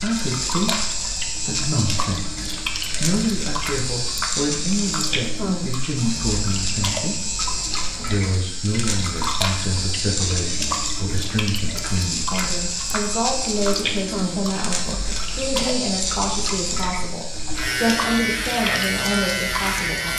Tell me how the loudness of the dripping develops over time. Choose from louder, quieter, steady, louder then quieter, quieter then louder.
steady.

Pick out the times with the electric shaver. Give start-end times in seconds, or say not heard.
0.0-20.1.